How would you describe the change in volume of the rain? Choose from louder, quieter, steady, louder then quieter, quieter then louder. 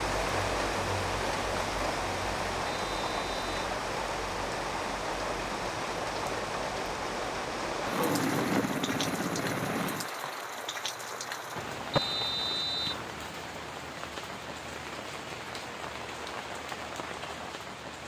quieter.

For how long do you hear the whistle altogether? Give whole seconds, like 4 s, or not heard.
2 s.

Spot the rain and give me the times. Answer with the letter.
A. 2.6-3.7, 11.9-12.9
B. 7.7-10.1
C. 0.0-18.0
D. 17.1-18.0
C.